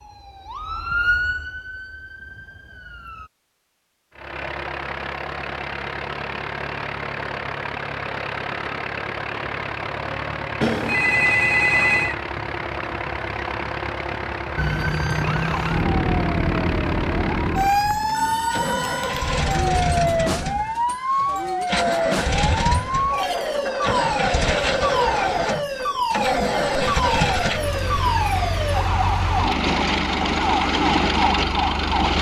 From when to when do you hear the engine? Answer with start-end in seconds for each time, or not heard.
4.2-32.1.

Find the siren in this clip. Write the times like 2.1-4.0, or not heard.
0.0-3.3, 14.6-32.1.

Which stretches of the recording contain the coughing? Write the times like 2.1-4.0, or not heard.
not heard.